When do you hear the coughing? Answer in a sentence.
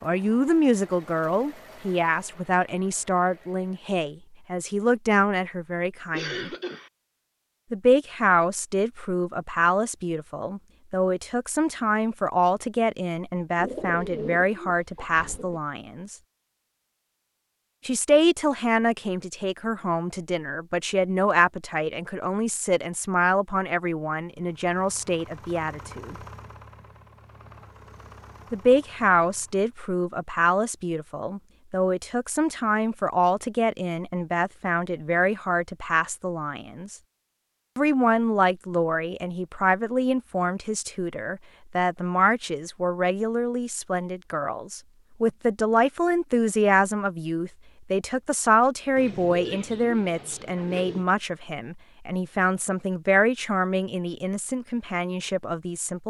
You can hear the coughing from 6.1 to 6.9 s.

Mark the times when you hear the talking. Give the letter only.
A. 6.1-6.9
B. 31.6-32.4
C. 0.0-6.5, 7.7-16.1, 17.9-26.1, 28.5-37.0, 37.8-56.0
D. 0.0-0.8
C.